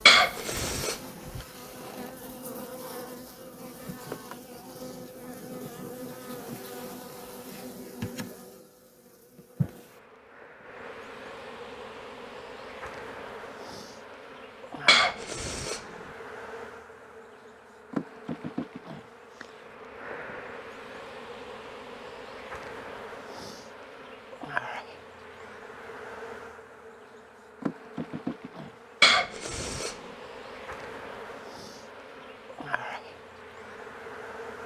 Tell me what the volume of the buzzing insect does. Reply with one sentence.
The loudness of the buzzing insect stays about the same.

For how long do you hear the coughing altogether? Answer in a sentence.
The coughing can be heard for 3 seconds in total.